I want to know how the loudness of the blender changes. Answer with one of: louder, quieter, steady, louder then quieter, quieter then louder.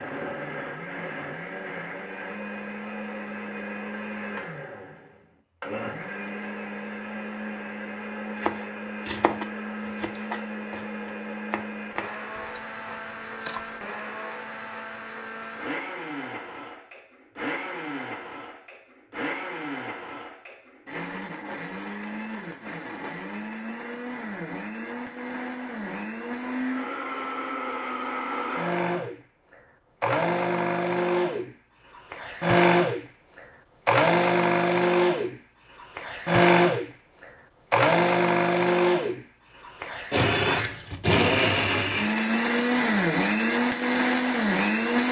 louder.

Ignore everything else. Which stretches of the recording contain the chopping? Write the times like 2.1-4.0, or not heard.
8.3-13.7.